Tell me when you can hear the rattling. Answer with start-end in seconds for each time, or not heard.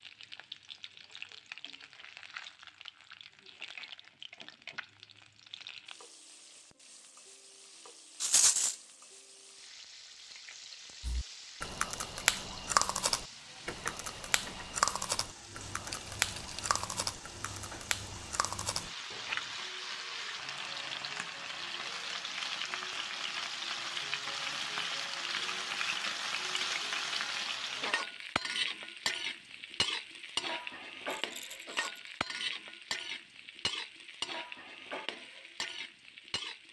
8.2-8.8, 15.9-16.8, 31.1-32.2.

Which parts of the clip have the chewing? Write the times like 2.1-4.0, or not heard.
11.0-19.6.